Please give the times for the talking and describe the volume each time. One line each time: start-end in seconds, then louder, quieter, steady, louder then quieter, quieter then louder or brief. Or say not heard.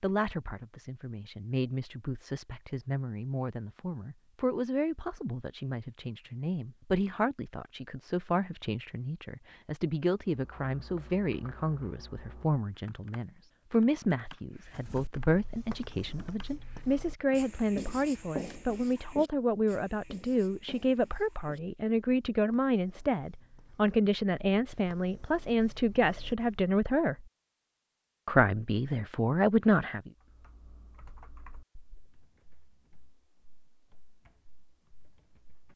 0.0-27.2 louder
28.2-30.1 brief.